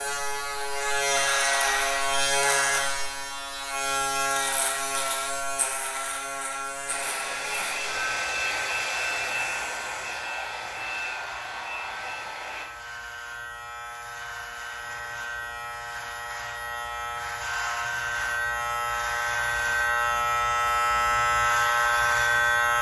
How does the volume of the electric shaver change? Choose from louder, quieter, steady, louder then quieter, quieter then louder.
quieter then louder.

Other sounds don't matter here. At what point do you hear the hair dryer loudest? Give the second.
9 s.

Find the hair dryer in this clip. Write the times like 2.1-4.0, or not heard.
6.8-12.7.